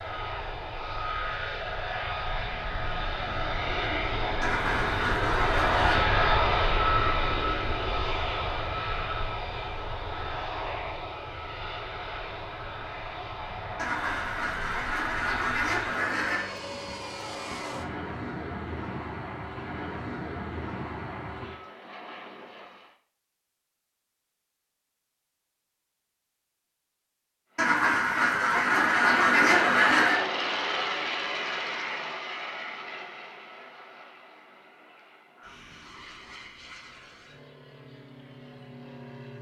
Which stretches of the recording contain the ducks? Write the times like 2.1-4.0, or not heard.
4.4-6.0, 13.8-16.6, 27.6-30.2.